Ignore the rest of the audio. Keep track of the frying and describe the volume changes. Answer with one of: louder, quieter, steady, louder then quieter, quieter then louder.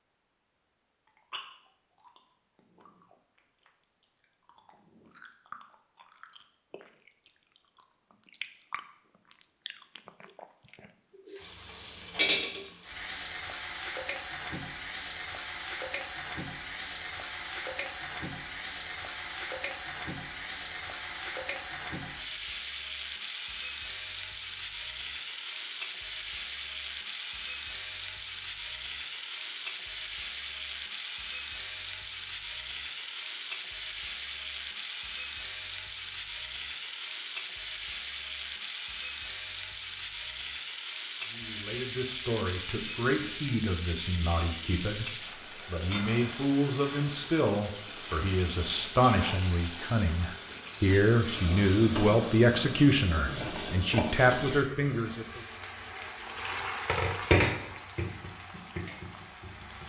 steady.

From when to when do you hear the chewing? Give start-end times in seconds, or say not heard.
1.1-11.6.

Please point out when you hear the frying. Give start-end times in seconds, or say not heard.
11.3-59.8.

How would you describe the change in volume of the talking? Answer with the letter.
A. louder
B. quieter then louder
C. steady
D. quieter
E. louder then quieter
A.